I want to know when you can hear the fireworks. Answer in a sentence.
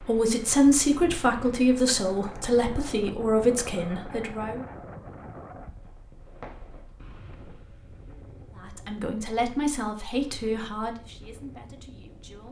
The fireworks can be heard from 5.5 to 7.4 s.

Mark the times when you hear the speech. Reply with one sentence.
You can hear the speech from 0.0 to 4.7 s and from 8.6 to 12.4 s.